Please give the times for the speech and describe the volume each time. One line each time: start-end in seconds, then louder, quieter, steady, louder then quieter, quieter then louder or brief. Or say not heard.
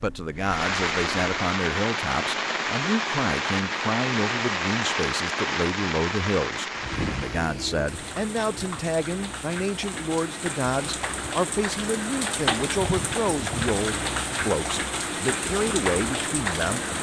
0.0-16.9 steady.